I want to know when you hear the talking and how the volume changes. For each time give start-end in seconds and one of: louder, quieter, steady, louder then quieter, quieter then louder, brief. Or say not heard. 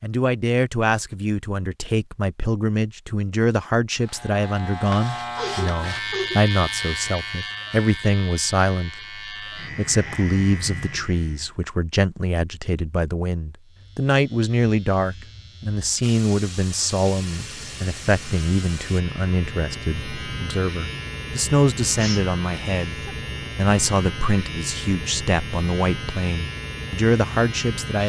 0.0-28.0 steady.